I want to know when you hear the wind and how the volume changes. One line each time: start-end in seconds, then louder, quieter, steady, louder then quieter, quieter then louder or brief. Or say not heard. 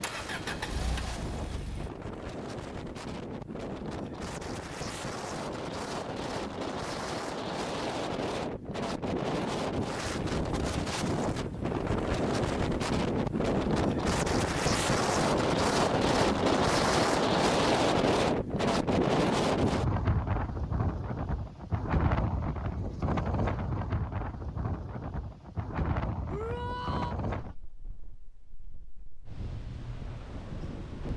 0.0-31.1 louder then quieter.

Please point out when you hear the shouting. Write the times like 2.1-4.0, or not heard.
26.2-27.1.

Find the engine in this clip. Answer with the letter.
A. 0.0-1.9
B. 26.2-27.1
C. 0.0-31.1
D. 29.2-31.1
A.